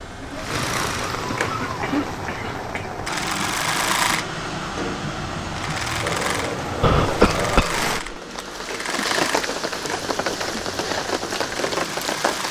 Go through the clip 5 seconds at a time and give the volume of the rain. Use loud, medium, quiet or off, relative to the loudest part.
medium, loud, loud.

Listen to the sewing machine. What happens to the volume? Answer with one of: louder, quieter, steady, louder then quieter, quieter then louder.
louder then quieter.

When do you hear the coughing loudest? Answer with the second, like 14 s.
7 s.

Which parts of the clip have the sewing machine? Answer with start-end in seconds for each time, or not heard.
0.0-12.4.